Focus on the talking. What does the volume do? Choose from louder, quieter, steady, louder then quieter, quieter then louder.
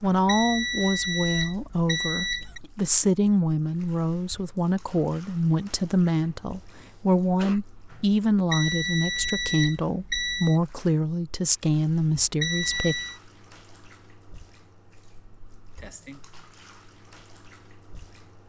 steady.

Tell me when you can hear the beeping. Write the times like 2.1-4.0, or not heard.
0.2-2.6, 8.5-10.6, 12.4-13.2.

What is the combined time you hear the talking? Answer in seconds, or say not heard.
13 s.